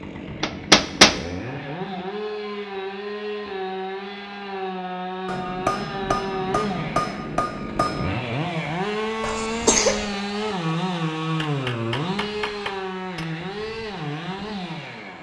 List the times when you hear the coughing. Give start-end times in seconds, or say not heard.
9.2-10.2.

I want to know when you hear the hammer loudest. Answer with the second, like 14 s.
1 s.